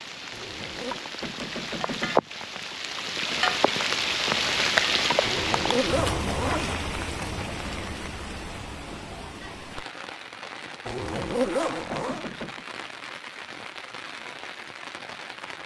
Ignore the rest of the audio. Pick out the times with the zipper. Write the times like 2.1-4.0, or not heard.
0.3-1.1, 5.2-6.8, 10.8-12.2.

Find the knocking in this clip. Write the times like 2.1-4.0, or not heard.
1.2-2.2, 11.9-12.7.